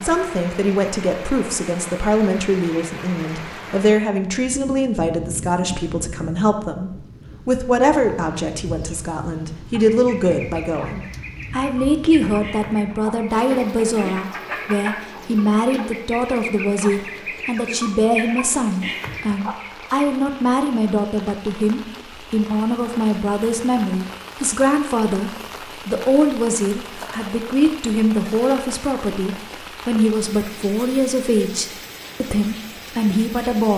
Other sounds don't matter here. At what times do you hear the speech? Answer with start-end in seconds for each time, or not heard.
0.0-33.7.